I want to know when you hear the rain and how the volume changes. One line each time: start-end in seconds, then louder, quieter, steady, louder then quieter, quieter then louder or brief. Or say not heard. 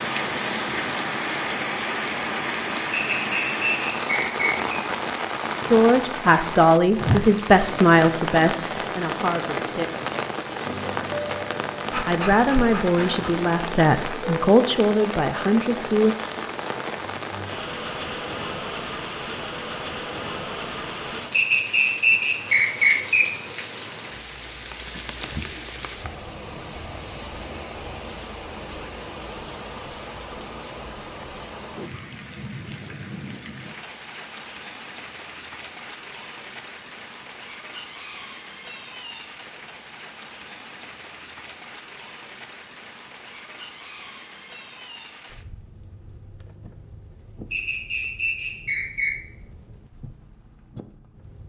0.0-51.4 quieter.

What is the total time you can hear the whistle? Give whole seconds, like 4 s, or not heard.
5 s.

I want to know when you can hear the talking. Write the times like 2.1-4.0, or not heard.
5.7-9.9, 12.1-16.1.